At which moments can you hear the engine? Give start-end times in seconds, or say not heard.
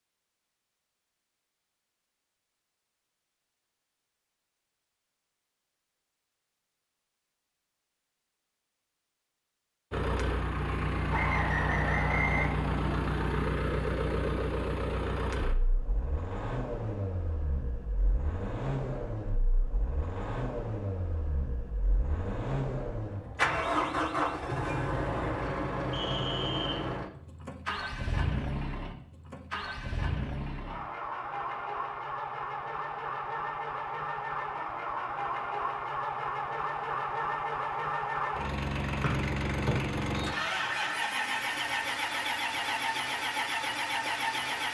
9.9-44.6.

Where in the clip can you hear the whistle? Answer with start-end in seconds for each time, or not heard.
11.1-12.5, 25.9-26.9, 39.0-40.2.